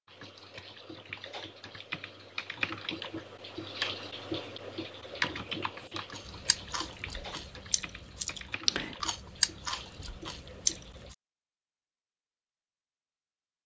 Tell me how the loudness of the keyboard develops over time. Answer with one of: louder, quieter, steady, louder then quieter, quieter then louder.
louder then quieter.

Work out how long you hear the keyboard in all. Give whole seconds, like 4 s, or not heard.
11 s.